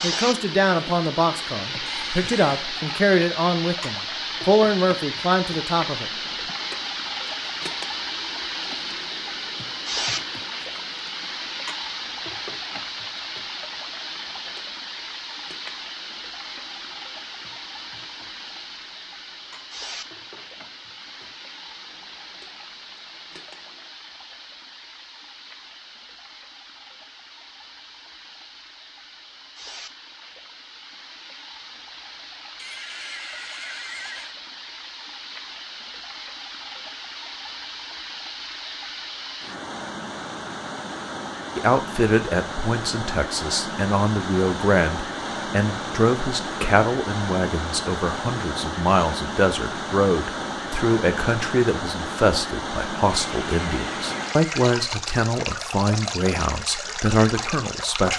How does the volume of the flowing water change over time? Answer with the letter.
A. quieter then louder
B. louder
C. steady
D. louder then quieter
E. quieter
A.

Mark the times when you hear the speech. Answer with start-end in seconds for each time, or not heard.
0.0-6.1, 41.5-58.1.